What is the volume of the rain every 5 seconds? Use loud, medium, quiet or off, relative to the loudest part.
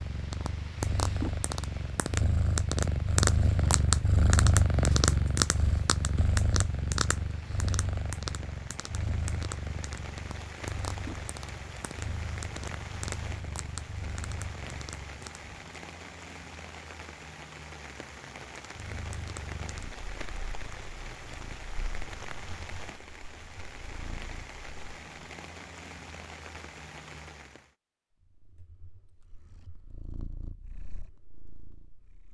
medium, medium, loud, loud, loud, loud, off.